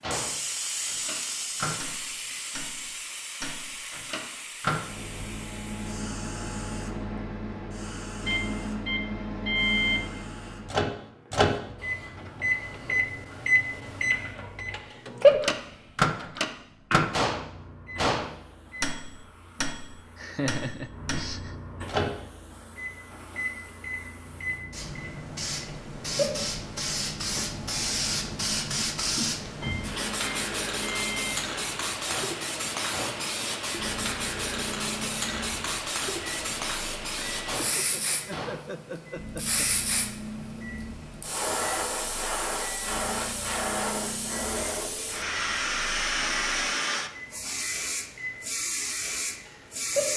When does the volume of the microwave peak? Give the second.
16 s.